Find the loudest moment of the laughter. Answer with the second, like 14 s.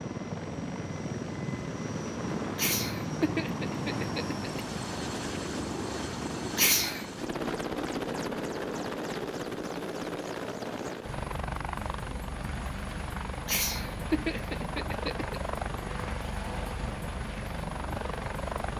7 s.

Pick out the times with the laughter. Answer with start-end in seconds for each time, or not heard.
2.5-4.7, 6.5-7.0, 13.4-15.4.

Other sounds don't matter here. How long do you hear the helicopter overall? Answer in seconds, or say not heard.
19 s.